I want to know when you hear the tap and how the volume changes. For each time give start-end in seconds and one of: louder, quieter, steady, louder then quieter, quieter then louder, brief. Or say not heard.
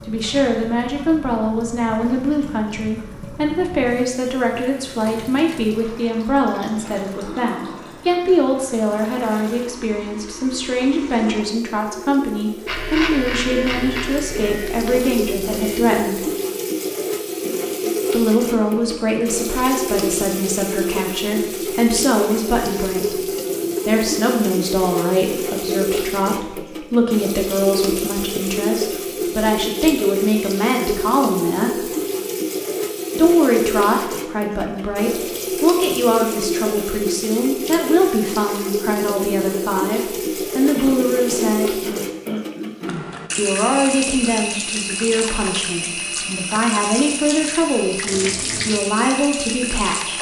0.0-50.1 louder.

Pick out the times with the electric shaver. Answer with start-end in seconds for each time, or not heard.
12.7-15.8.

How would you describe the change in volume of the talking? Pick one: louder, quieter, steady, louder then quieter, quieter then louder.
steady.